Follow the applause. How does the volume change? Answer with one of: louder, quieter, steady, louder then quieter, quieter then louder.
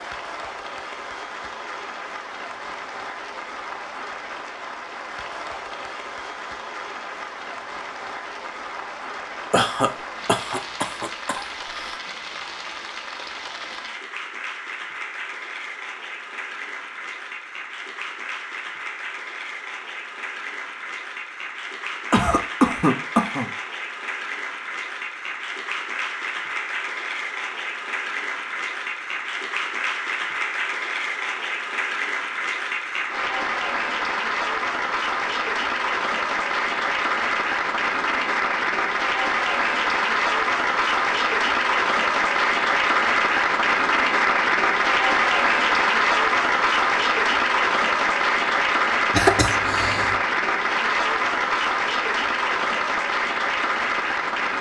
louder.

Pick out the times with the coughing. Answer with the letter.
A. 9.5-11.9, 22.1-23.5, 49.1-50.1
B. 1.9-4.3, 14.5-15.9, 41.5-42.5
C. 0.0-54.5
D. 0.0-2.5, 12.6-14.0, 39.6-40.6
A.